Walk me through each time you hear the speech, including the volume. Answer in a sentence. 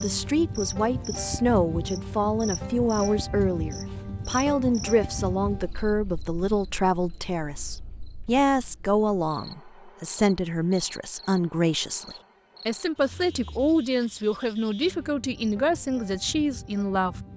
The speech can be heard from 0.0 to 17.1 s, at a steady volume.